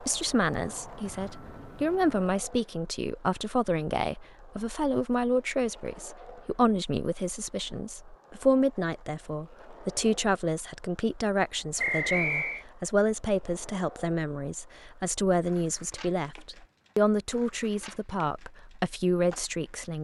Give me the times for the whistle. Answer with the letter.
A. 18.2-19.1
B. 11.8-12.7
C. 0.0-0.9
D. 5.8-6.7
B.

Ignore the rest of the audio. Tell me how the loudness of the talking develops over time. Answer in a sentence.
The loudness of the talking stays about the same.